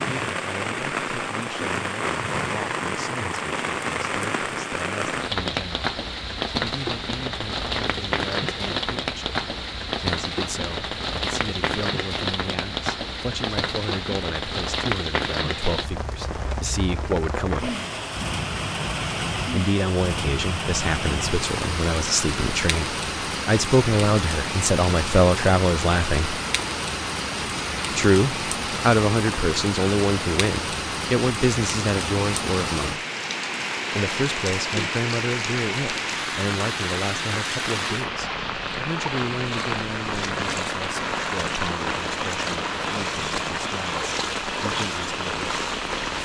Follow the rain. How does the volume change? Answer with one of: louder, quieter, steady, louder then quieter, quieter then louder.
steady.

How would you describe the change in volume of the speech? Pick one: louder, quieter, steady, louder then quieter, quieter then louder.
louder then quieter.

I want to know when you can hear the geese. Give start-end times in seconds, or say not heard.
not heard.